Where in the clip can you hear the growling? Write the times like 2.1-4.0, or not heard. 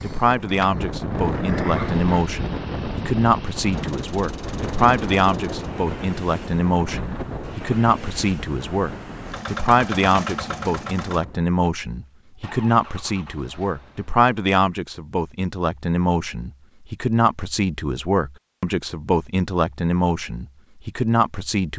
1.2-2.2.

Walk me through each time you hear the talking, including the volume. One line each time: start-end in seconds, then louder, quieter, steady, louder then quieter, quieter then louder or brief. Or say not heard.
0.0-21.7 steady.